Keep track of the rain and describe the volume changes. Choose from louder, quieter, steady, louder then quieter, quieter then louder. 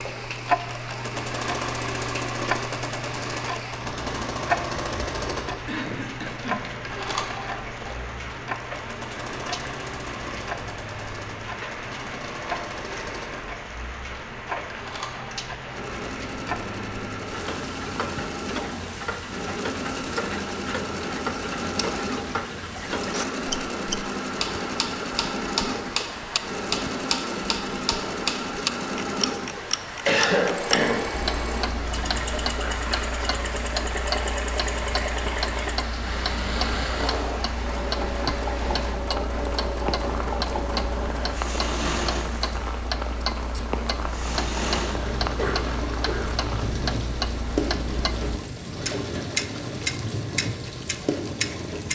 steady.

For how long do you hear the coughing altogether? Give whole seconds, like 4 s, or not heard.
3 s.